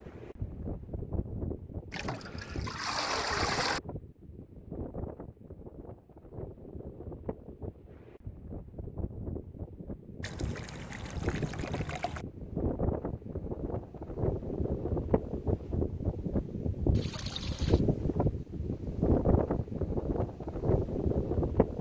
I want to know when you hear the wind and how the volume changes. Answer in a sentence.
You can hear the wind from 0.0 to 21.7 s, getting louder.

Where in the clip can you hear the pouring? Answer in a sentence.
The pouring can be heard from 1.9 to 3.8 s, from 10.2 to 12.2 s and from 16.9 to 17.8 s.